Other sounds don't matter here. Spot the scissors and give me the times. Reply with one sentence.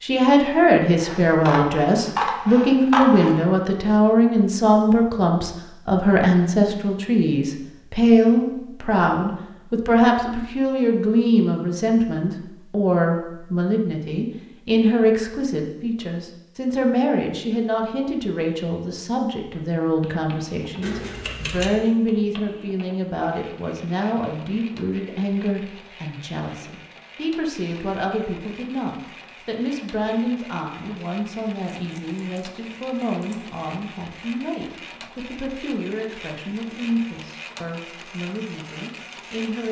The scissors can be heard from 1.0 to 3.4 s, from 20.8 to 21.8 s and from 31.6 to 33.4 s.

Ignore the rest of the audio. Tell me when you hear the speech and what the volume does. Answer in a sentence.
You can hear the speech from 0.0 to 39.6 s, getting quieter.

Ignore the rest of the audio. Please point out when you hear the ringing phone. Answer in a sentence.
The ringing phone can't be heard in this clip.